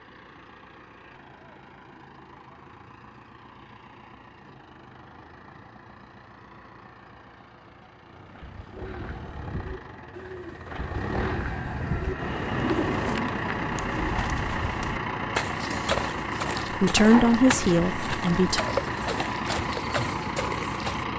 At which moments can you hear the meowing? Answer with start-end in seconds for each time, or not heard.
not heard.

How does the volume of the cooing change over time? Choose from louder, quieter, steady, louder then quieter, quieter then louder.
louder.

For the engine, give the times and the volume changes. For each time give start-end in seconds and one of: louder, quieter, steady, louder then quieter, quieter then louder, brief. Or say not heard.
0.0-21.1 louder.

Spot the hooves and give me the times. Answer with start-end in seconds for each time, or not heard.
13.6-21.1.